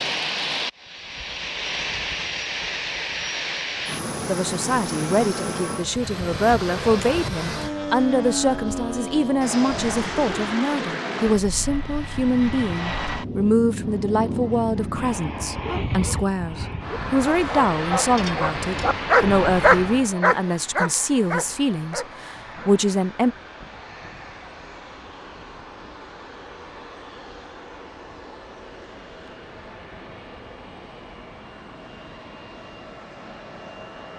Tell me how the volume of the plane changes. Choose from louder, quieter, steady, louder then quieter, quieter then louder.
quieter.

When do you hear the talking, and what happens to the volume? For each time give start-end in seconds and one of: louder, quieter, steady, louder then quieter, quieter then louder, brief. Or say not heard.
4.2-23.4 steady.